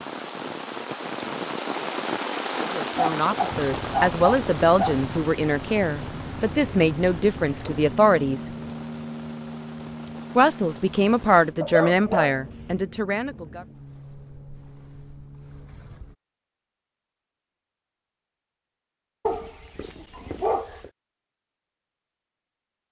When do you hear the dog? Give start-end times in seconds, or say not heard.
3.0-5.0, 11.6-12.8, 19.2-20.9.